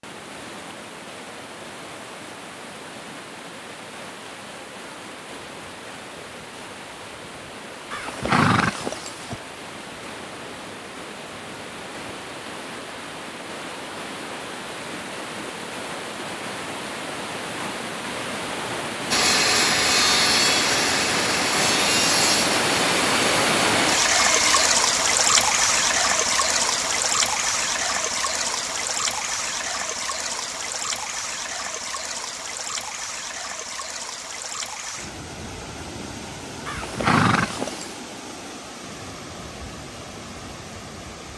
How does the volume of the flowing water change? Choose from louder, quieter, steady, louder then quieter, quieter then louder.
louder then quieter.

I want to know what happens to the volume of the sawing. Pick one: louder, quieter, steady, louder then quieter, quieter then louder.
quieter.